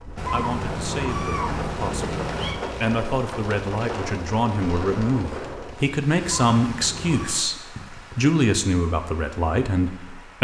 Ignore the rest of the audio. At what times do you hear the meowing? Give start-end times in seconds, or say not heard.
0.1-2.5, 6.2-7.4.